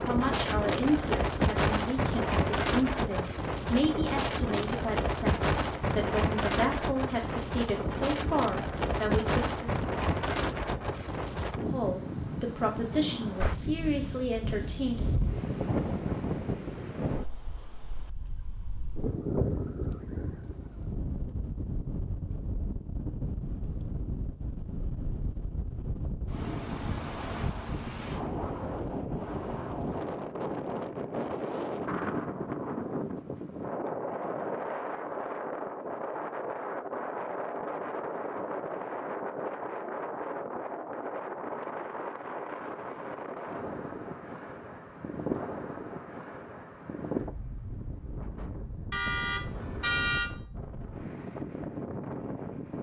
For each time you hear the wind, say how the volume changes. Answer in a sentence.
You can hear the wind from 0.0 to 52.7 s, getting quieter.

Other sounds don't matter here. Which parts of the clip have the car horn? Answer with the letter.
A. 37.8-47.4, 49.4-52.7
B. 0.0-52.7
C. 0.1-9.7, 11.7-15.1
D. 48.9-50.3
D.